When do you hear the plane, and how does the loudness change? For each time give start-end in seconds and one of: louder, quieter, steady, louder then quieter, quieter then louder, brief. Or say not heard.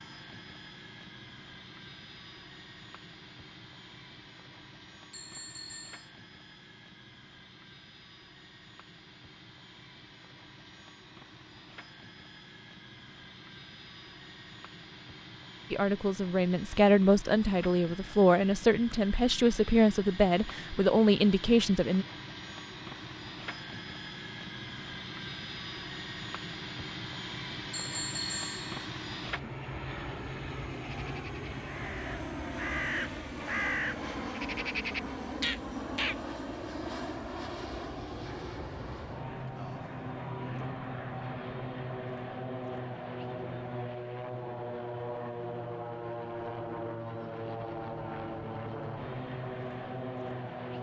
0.0-50.7 louder.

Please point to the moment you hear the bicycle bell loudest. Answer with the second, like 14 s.
28 s.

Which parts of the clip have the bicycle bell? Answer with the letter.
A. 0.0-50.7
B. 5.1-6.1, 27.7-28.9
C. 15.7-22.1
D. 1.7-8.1
B.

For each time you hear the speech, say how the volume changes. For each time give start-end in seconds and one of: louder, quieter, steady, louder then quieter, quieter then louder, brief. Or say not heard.
15.7-22.1 steady.